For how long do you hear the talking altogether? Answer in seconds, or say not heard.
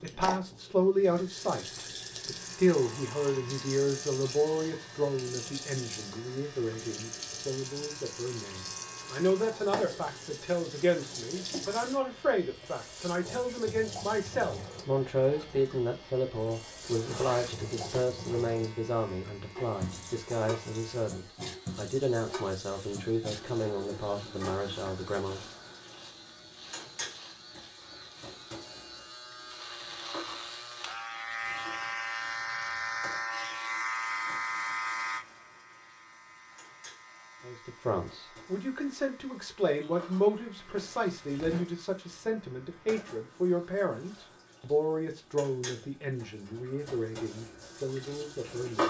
37 s.